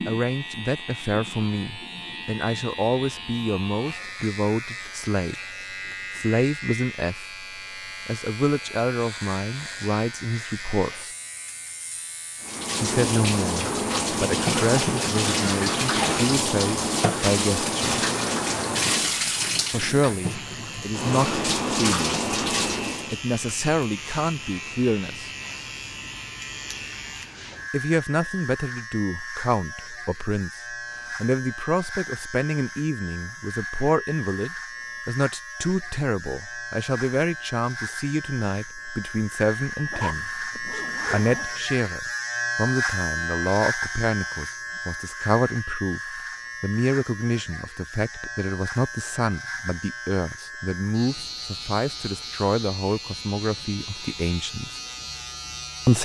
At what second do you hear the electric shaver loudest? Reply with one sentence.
The loudest moment of the electric shaver is at 43 seconds.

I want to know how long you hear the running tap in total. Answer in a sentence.
You can hear the running tap for 11 seconds altogether.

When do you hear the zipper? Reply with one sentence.
The zipper can be heard from 39.9 to 41.5 s.